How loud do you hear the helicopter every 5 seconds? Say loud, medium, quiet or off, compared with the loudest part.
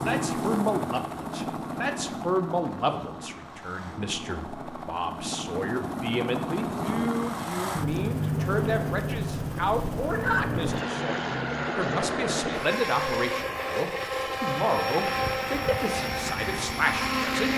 medium, loud, loud, loud.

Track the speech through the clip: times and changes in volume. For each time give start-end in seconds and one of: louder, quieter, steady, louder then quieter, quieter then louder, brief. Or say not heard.
0.0-17.5 steady.